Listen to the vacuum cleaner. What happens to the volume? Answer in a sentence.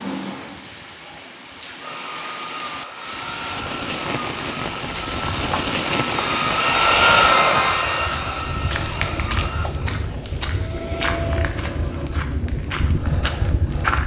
The volume of the vacuum cleaner goes up, then down.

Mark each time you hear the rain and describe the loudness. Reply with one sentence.
The rain can be heard from 0.0 to 7.8 s, getting louder.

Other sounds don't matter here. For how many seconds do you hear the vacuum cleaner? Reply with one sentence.
The vacuum cleaner can be heard for 10 seconds in total.